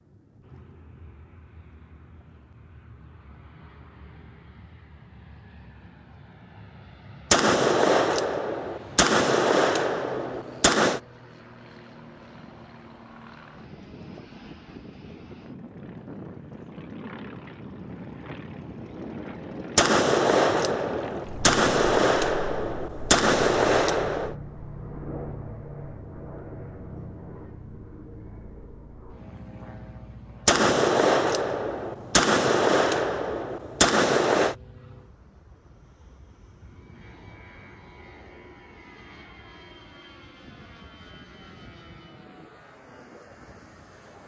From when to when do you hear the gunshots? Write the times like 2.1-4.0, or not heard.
7.3-11.0, 19.8-24.4, 30.4-34.5.